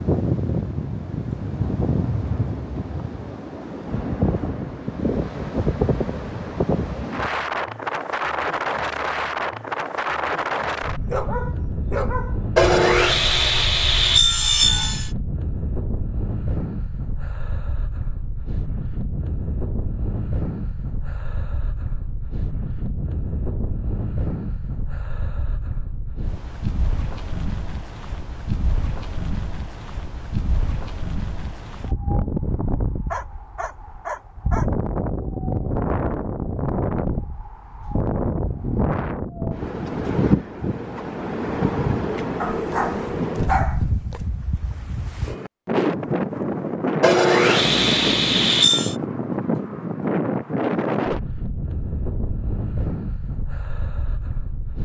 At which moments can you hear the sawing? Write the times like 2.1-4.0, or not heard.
12.6-15.1, 47.0-49.0.